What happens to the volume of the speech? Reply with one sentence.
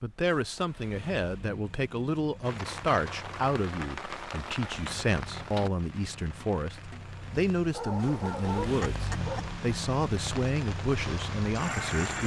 The volume of the speech stays about the same.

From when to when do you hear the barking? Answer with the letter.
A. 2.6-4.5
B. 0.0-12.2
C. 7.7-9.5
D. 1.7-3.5
C.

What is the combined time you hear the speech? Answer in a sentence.
You can hear the speech for 12 seconds altogether.